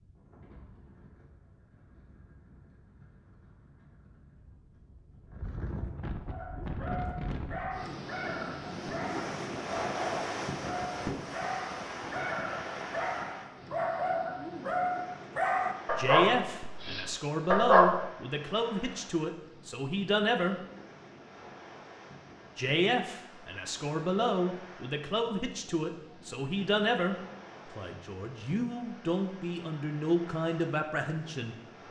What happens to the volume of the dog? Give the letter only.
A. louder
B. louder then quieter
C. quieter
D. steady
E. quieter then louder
A.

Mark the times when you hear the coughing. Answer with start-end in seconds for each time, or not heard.
not heard.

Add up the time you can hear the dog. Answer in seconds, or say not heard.
12 s.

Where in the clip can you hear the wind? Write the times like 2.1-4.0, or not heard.
0.0-31.8.